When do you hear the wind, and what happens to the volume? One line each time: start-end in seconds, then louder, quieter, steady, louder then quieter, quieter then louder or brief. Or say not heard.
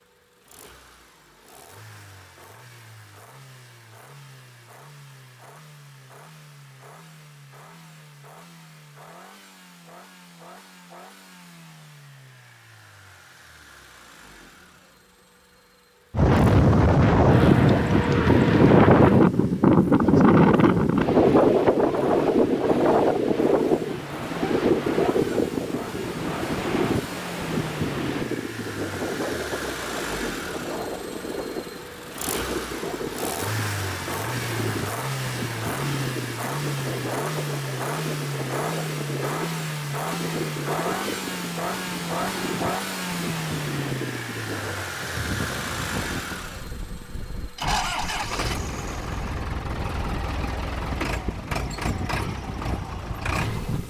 16.1-53.8 quieter.